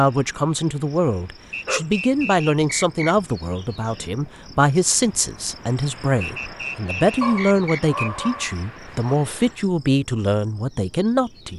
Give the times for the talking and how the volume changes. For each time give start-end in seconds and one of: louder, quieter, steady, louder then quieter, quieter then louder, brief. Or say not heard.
0.0-11.5 steady.